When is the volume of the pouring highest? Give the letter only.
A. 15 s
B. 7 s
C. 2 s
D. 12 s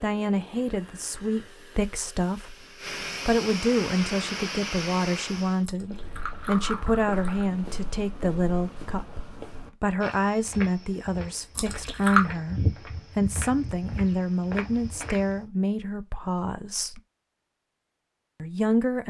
D.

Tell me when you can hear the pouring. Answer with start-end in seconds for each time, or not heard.
5.6-7.5, 11.6-12.2.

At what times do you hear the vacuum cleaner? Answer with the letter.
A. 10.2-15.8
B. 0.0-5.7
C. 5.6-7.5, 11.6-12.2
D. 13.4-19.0
B.